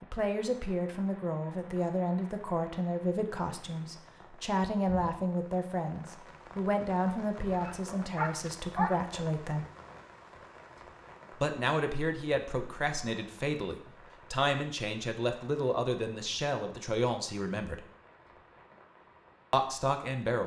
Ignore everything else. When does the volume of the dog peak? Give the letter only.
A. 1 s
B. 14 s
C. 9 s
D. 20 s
C.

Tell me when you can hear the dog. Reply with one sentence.
The dog can be heard from 7.5 to 9.2 s.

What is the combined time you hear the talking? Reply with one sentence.
The talking can be heard for 17 seconds in total.